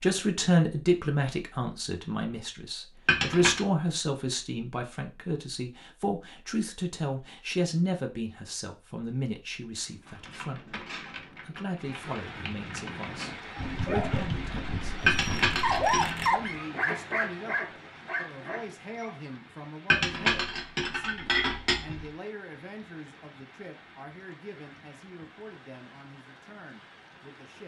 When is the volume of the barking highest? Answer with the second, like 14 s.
16 s.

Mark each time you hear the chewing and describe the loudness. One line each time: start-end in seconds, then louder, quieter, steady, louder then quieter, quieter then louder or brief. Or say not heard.
not heard.